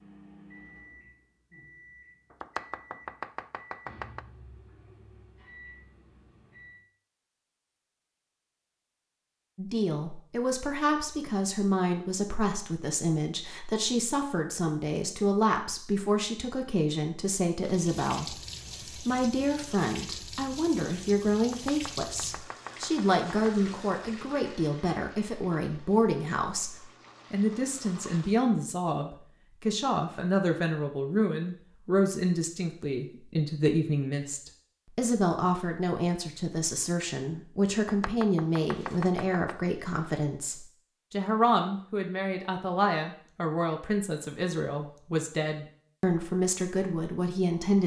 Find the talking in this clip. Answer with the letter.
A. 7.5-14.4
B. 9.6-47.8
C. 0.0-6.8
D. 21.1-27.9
B.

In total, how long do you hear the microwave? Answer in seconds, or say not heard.
7 s.